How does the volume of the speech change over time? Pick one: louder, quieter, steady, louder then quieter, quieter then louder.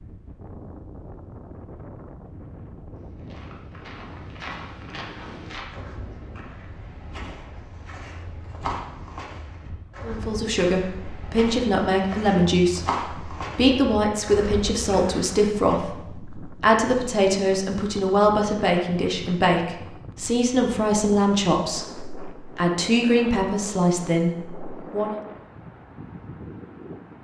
steady.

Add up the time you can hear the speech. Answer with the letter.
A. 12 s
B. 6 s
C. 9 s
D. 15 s
D.